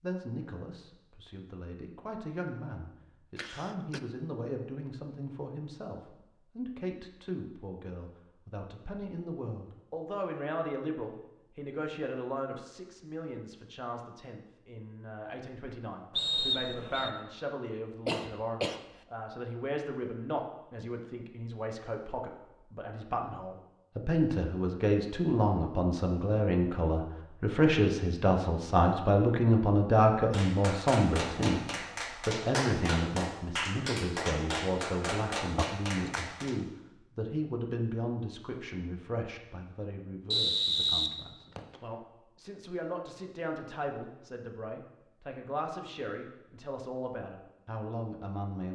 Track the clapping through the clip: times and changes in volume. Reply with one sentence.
You can hear the clapping from 30.3 to 36.5 s, at a steady volume.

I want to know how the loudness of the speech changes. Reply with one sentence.
The volume of the speech goes up, then down.